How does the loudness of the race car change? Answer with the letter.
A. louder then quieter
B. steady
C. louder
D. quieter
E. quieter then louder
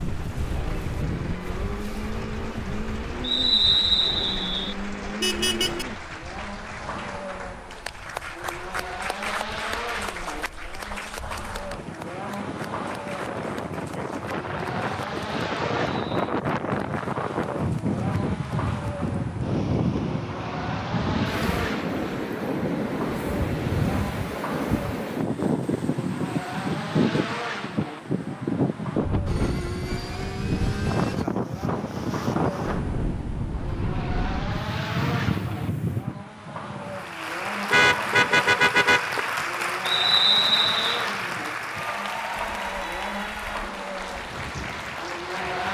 B.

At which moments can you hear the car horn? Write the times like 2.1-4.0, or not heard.
5.2-5.8, 37.7-39.2.